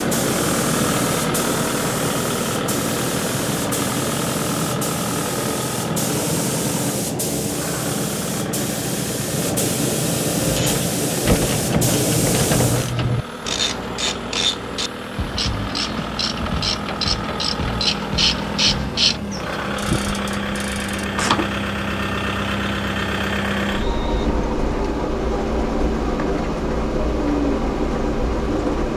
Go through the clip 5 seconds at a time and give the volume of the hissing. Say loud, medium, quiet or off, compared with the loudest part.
loud, loud, loud, off, off, off.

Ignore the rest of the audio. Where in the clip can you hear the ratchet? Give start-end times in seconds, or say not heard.
10.3-21.4.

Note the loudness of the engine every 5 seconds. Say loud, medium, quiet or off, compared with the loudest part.
loud, medium, medium, medium, loud, loud.